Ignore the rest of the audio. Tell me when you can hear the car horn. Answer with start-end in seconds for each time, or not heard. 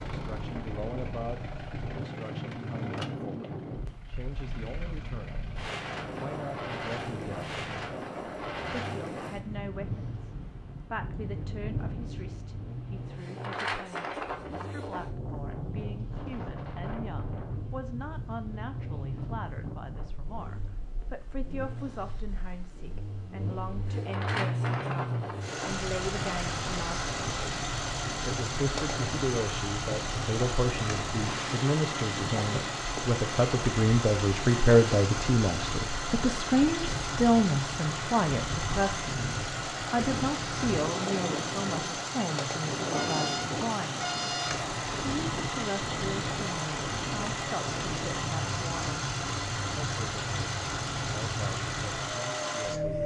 42.9-44.7.